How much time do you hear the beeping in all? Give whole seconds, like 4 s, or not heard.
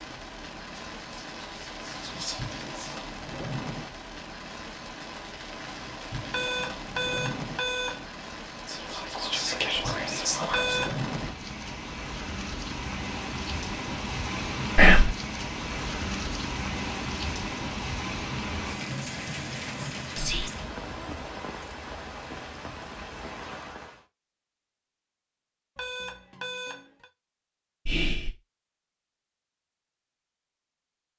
4 s.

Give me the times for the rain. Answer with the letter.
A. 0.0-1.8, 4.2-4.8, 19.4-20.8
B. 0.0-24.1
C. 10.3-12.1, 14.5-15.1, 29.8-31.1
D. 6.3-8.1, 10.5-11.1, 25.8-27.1
B.